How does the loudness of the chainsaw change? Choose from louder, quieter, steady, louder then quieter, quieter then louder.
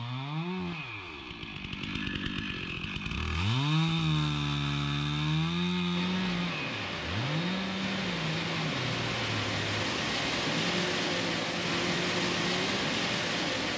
louder then quieter.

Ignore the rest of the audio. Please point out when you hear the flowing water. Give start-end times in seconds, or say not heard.
5.9-13.7.